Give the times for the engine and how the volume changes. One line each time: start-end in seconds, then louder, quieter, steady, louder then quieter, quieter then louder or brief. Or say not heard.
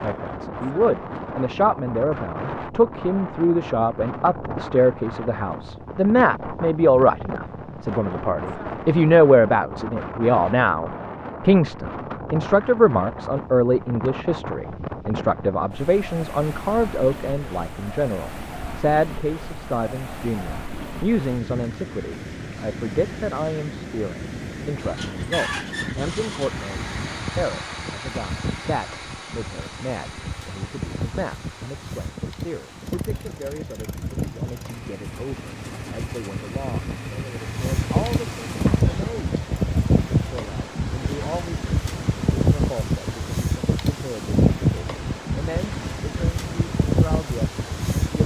24.8-38.9 quieter then louder.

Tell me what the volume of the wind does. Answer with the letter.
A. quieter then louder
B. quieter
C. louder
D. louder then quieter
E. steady
C.